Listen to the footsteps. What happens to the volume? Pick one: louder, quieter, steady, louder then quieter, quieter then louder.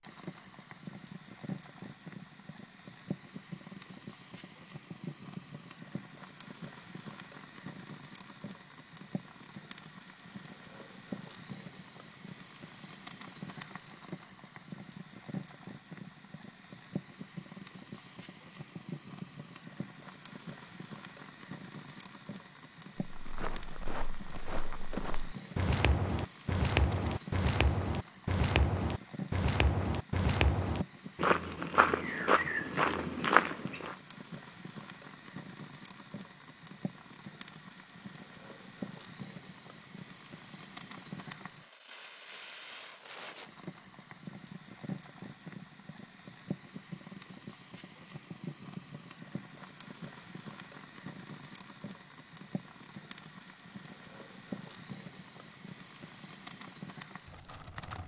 louder.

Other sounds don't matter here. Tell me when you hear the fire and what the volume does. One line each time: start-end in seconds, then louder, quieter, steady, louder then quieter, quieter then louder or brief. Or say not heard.
0.0-58.0 steady.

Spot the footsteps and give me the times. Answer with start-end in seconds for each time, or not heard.
23.1-34.0.